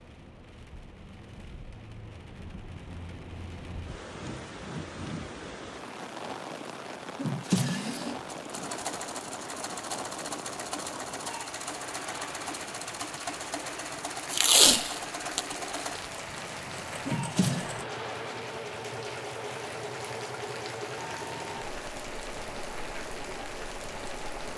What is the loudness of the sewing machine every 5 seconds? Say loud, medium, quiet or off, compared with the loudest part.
off, loud, loud, loud, loud.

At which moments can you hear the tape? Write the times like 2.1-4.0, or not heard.
14.3-15.8.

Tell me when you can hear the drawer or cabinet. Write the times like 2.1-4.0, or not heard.
7.2-8.2, 17.1-17.7.